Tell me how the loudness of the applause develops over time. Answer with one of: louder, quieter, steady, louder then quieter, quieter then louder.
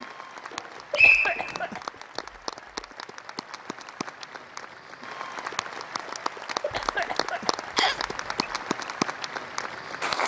louder.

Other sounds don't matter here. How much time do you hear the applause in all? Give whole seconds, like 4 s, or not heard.
10 s.